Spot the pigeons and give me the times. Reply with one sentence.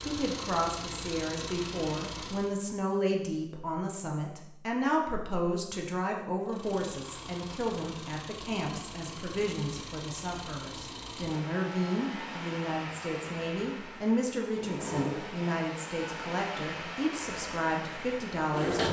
You can't hear the pigeons here.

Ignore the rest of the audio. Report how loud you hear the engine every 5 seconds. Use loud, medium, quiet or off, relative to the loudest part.
loud, medium, medium, loud.